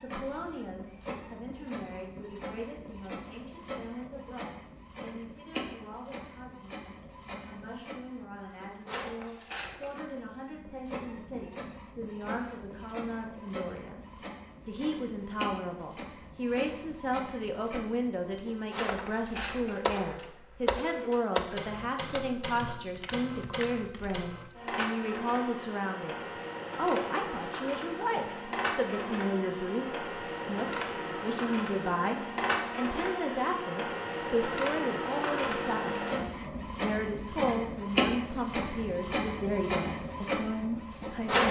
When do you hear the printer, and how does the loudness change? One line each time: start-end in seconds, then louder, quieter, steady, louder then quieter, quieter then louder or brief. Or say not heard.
0.0-41.4 louder.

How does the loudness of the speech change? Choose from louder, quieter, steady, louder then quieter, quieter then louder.
louder.